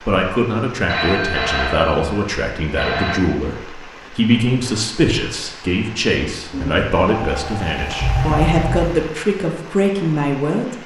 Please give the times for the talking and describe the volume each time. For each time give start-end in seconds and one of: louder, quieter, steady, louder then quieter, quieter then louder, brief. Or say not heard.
0.0-10.8 steady.